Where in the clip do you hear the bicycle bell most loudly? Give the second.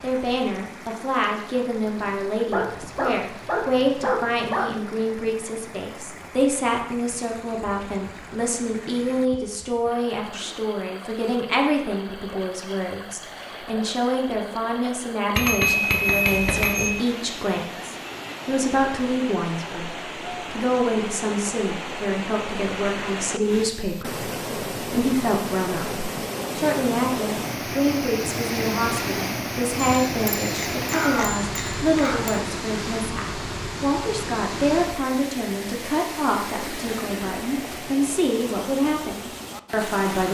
16 s.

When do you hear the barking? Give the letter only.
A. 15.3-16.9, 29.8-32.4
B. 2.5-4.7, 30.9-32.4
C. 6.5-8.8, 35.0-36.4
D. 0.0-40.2
B.